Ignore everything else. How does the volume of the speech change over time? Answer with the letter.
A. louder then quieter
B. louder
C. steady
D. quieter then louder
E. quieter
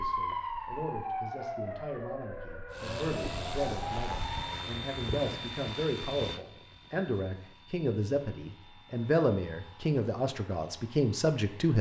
B.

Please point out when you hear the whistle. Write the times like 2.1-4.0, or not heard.
not heard.